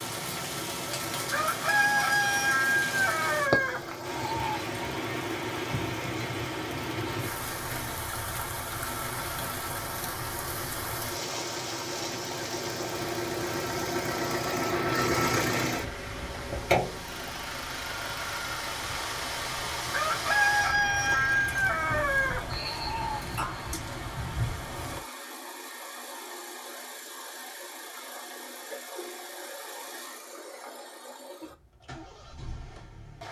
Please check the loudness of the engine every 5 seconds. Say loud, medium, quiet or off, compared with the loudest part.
medium, medium, loud, loud, medium, medium, quiet.